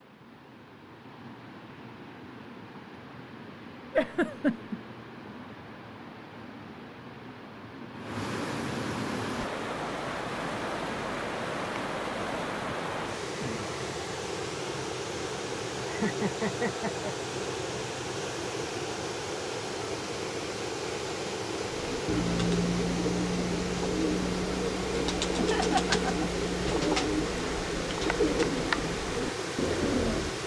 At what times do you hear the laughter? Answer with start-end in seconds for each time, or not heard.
3.9-4.8, 15.8-17.1, 25.4-27.1.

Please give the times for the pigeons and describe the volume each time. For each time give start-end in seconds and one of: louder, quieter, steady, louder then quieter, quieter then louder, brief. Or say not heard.
21.7-30.4 steady.